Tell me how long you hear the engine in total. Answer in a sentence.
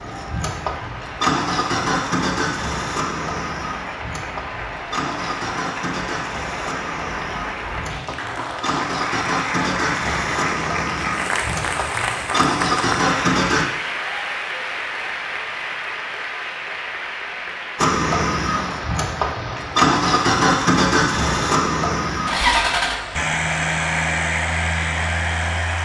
You can hear the engine for 22 seconds altogether.